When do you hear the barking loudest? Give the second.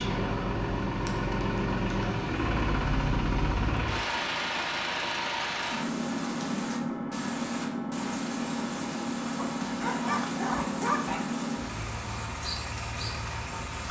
11 s.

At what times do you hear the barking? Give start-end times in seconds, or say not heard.
9.6-11.3.